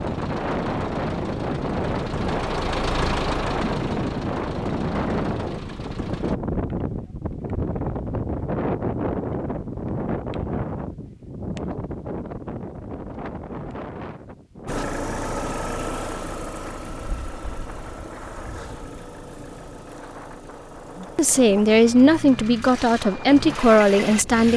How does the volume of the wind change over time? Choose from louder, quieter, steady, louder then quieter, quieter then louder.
quieter.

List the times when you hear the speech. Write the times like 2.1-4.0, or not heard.
21.0-24.5.